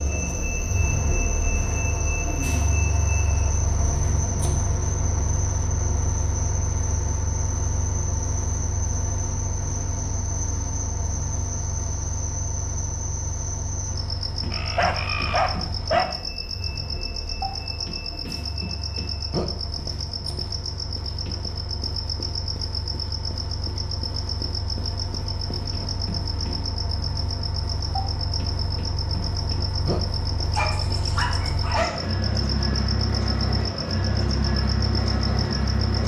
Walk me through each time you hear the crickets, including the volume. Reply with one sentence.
You can hear the crickets from 0.0 to 36.0 s, at a steady volume.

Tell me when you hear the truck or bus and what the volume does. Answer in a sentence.
You can hear the truck or bus from 0.0 to 36.0 s, getting quieter then louder.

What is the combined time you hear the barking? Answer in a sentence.
You can hear the barking for 3 seconds altogether.